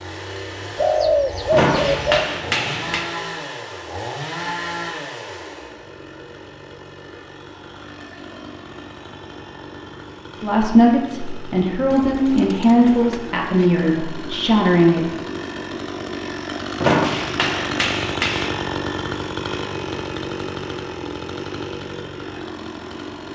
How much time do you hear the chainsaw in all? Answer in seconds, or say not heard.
23 s.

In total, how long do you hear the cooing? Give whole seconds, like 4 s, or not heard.
3 s.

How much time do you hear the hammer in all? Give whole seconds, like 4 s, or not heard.
3 s.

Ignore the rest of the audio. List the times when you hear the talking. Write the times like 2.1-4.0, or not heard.
10.4-15.1.